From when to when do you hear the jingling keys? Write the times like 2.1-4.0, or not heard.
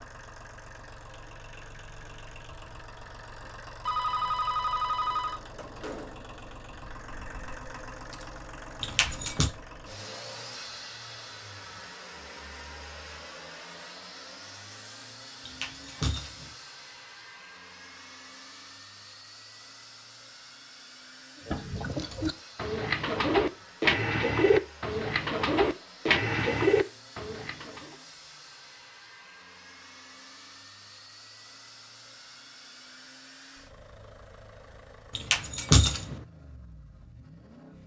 8.8-9.5, 15.4-16.5, 35.1-36.2.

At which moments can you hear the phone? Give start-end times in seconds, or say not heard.
3.9-5.4.